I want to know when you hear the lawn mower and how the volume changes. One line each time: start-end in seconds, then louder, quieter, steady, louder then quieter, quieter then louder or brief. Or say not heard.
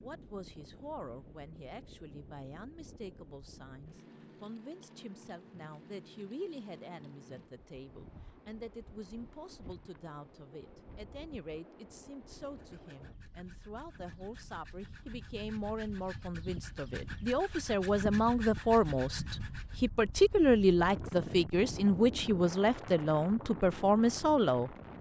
not heard.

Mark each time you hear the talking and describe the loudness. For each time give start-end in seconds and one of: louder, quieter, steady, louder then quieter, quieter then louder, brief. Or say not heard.
0.0-24.7 louder.